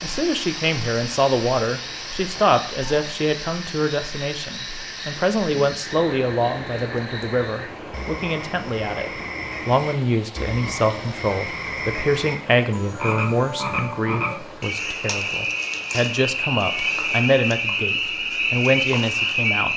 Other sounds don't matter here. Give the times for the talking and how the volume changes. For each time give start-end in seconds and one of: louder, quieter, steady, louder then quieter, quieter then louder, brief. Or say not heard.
0.0-19.7 steady.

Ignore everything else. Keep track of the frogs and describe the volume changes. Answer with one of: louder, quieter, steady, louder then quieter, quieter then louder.
louder.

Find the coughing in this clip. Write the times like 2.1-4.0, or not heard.
not heard.